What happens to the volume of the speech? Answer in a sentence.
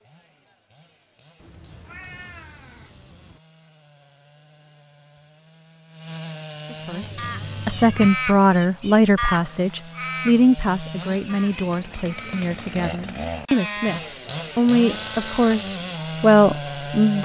The loudness of the speech goes down, then up.